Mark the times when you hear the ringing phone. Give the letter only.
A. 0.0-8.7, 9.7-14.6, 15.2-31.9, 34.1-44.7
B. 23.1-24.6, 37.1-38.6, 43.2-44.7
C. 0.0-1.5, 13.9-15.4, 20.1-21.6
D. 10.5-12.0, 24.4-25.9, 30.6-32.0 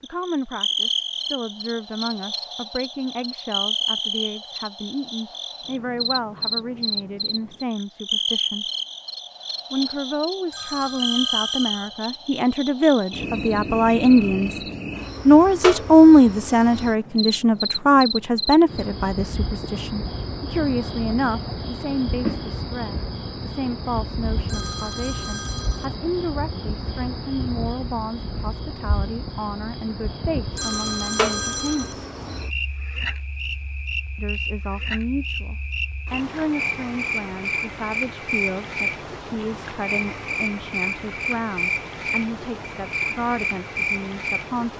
D.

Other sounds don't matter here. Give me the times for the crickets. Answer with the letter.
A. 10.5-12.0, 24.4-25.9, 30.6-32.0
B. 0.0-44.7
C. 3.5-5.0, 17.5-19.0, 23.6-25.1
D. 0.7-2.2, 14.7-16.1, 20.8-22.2
B.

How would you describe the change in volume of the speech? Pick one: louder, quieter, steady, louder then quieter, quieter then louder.
louder then quieter.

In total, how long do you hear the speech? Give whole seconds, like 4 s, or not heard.
41 s.